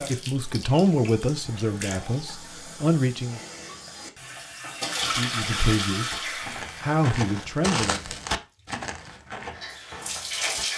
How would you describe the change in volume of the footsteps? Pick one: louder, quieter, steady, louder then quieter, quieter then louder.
louder then quieter.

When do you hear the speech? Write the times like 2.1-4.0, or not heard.
0.1-3.4, 5.2-8.2.